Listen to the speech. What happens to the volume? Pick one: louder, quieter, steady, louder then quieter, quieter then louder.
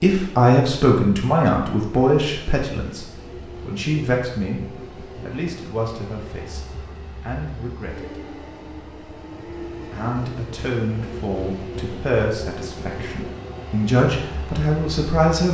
quieter then louder.